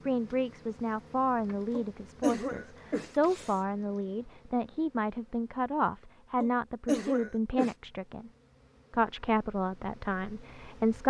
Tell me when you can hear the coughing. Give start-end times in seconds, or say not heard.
1.7-3.5, 6.4-7.8.